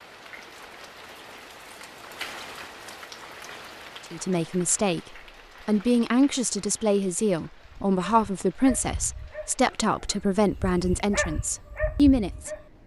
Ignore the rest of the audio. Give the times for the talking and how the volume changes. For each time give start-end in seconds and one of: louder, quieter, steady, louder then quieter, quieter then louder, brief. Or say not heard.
4.1-5.0 brief
5.7-12.5 steady.